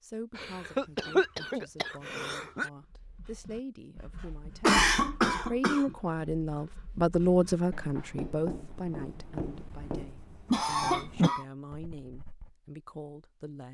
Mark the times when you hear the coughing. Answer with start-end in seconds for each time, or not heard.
0.3-2.7, 4.6-6.0, 10.5-11.4.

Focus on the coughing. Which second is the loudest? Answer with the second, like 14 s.
5 s.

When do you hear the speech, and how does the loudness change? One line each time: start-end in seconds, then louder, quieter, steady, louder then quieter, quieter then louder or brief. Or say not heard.
0.0-13.6 louder then quieter.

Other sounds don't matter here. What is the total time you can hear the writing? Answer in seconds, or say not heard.
10 s.